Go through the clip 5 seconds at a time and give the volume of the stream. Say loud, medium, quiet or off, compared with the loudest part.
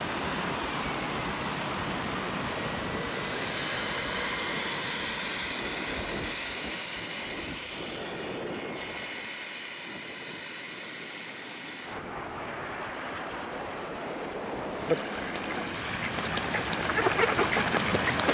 loud, medium, medium, loud.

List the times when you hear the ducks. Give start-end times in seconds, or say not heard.
14.7-18.2.